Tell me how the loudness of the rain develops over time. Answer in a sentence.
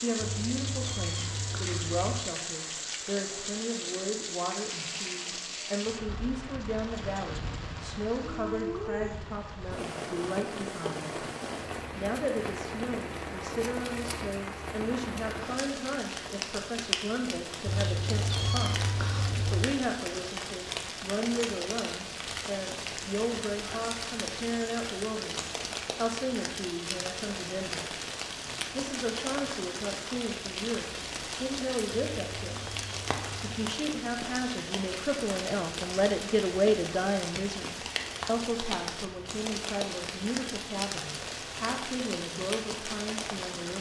The loudness of the rain stays about the same.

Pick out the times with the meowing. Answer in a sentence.
You can hear the meowing from 0.2 to 2.2 s, from 17.6 to 19.6 s and from 31.9 to 33.5 s.